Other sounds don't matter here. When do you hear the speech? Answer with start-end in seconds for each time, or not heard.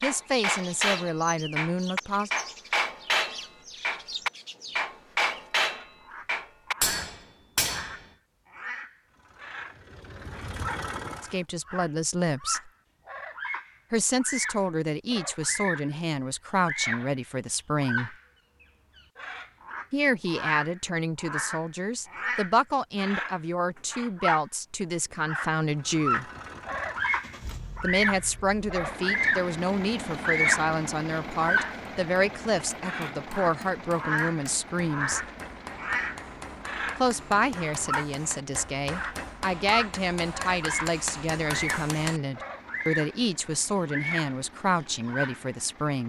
0.0-2.3, 11.2-12.7, 13.9-18.1, 19.9-26.2, 27.8-35.2, 37.0-46.0.